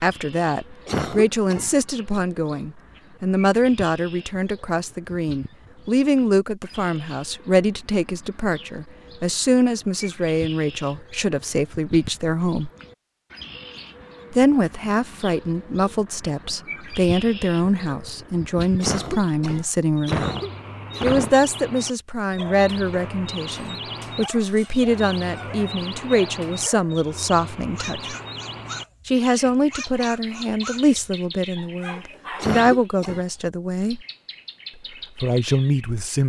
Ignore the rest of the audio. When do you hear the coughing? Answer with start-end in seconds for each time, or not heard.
0.8-2.2, 18.8-21.4, 32.4-33.2.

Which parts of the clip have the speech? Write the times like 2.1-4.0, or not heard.
0.0-12.7, 14.3-20.2, 21.0-28.1, 29.1-34.0, 35.1-36.2.